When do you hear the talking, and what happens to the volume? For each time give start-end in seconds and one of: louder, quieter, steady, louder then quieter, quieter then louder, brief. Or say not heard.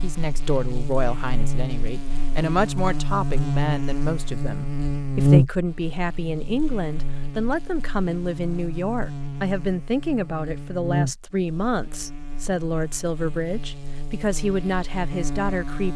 0.0-15.9 steady.